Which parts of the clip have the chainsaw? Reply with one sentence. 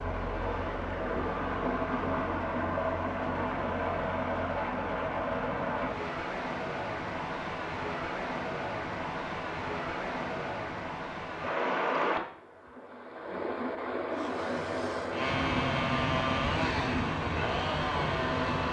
The chainsaw can be heard from 14.1 to 18.6 s.